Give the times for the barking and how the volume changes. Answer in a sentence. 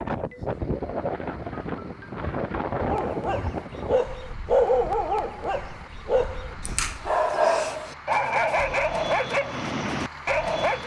You can hear the barking from 2.8 to 10.8 s, at a steady volume.